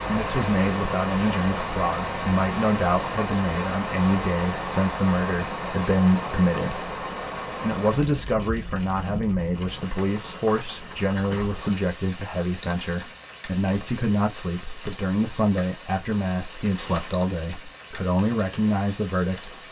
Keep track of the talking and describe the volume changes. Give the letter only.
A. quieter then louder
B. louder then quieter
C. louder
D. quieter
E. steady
E.